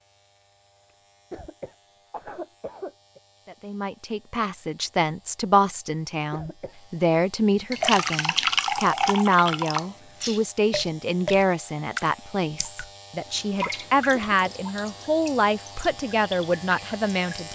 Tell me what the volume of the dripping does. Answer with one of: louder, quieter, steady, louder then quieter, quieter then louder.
quieter.